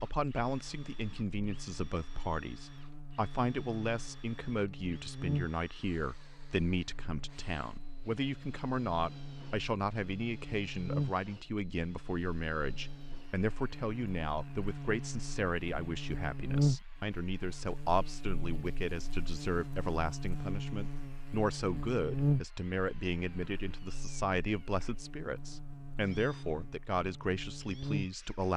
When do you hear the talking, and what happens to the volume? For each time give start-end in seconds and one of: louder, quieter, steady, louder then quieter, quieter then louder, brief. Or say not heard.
0.0-28.5 steady.